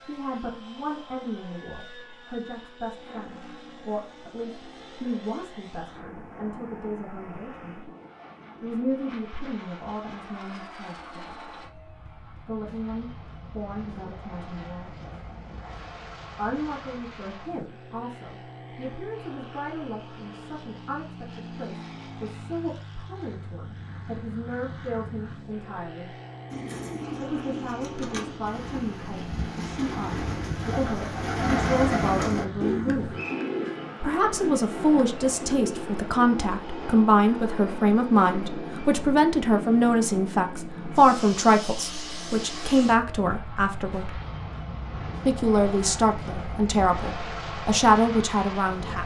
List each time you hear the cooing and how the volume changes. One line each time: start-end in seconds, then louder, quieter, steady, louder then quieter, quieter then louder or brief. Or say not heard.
26.5-36.1 louder then quieter.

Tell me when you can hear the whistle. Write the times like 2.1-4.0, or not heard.
33.1-33.5.